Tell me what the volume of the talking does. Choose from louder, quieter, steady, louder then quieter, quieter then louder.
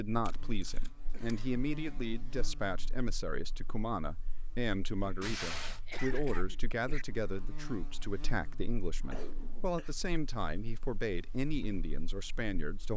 steady.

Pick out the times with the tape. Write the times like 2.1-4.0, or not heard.
0.2-1.4, 5.2-5.8, 9.0-9.7.